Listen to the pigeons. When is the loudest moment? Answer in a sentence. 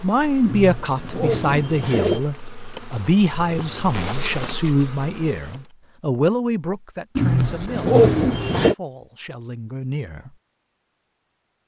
The volume of the pigeons peaks at 8 seconds.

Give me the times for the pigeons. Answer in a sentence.
The pigeons can be heard from 0.4 to 2.2 s and from 7.2 to 8.8 s.